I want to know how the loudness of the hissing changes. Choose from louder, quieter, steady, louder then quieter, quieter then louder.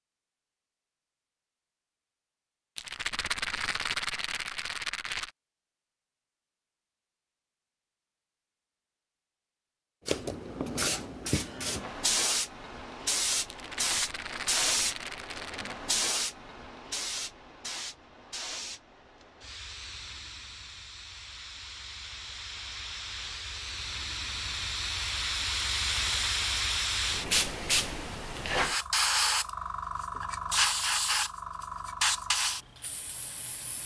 quieter then louder.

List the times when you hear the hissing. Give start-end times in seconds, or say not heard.
10.1-33.8.